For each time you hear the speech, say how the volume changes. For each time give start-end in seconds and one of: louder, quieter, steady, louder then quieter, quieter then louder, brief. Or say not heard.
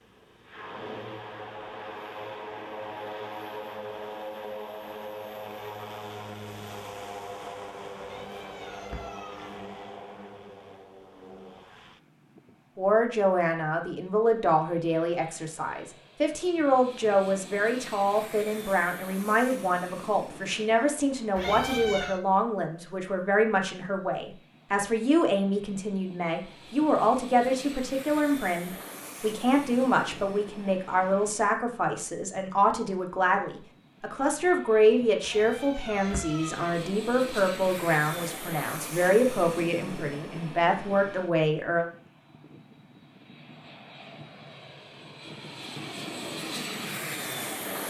12.8-41.9 steady.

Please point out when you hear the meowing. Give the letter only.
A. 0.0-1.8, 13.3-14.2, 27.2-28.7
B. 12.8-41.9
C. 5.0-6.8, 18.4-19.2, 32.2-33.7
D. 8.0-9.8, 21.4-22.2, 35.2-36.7
D.